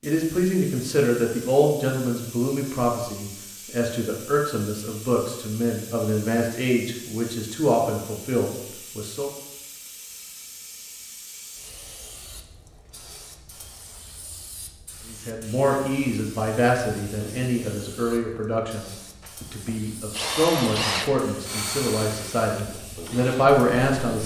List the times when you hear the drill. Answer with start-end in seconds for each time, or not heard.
19.2-24.2.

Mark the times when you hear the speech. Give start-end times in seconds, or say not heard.
0.0-9.3, 15.1-24.2.